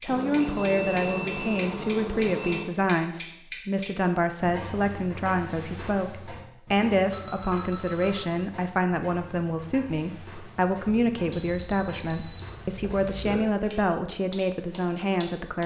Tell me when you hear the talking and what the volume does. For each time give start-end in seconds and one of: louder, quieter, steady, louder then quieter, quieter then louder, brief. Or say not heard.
0.0-15.6 steady.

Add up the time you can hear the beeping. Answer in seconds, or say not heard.
6 s.